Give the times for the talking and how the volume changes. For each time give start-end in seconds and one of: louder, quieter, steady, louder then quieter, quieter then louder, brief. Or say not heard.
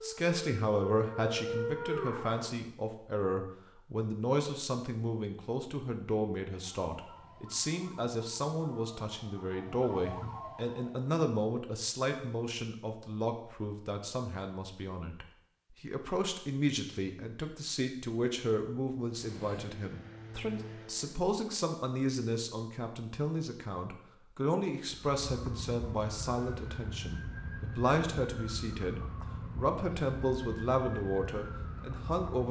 0.0-32.4 steady.